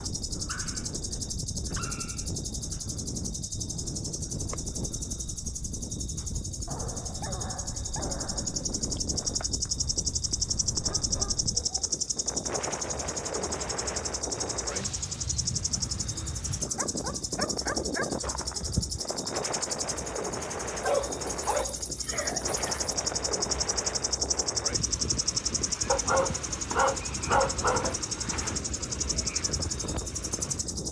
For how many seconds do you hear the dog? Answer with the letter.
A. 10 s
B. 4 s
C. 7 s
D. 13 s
D.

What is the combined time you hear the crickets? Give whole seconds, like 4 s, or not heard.
31 s.